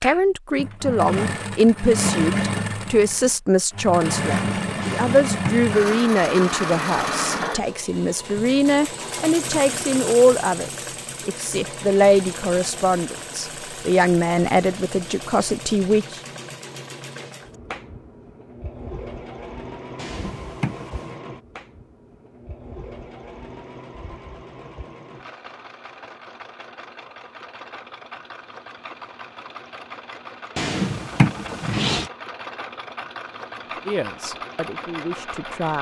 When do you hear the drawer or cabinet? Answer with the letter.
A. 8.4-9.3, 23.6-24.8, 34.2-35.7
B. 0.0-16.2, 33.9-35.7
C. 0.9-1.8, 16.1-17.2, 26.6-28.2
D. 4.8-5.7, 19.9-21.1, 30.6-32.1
D.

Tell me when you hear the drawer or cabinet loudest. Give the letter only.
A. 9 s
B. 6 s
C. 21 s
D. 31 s
D.